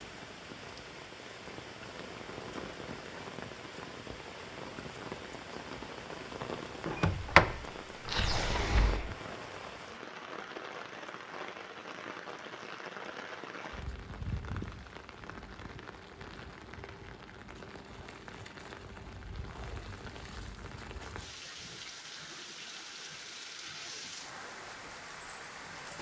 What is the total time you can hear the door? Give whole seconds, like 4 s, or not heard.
2 s.